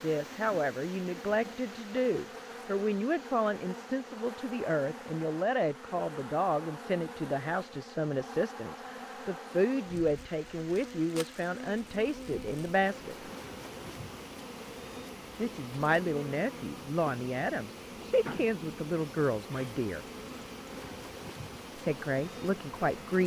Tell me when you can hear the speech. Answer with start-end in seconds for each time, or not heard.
0.0-13.2, 15.3-20.1, 21.8-23.2.